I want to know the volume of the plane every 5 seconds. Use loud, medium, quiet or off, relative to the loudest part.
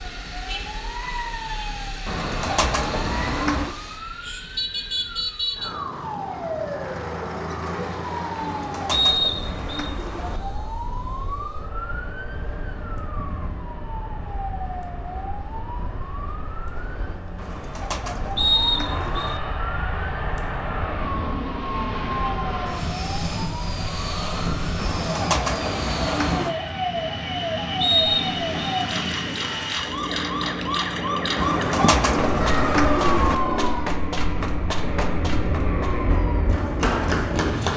quiet, quiet, quiet, medium, loud, loud, loud, loud.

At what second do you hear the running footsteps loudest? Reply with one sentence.
The volume of the running footsteps peaks at 37 seconds.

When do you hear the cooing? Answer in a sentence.
The cooing can be heard from 2.0 to 3.8 s, from 8.3 to 10.4 s, from 17.4 to 19.4 s, from 24.8 to 26.6 s and from 31.4 to 33.4 s.